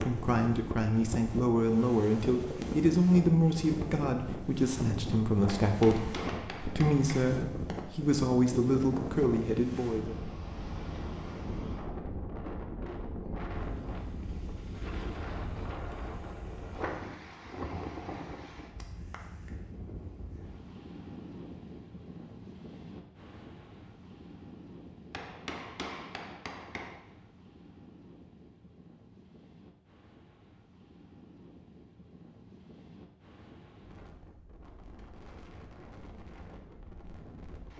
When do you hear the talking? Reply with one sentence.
You can hear the talking from 0.0 to 10.2 s.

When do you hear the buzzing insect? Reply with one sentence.
You can't hear the buzzing insect here.